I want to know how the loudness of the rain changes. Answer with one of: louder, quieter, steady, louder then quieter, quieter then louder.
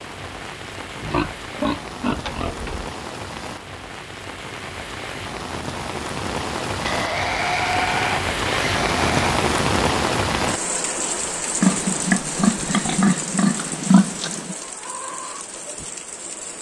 louder then quieter.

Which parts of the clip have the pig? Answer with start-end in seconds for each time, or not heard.
0.9-2.9, 6.8-9.3, 11.6-14.6.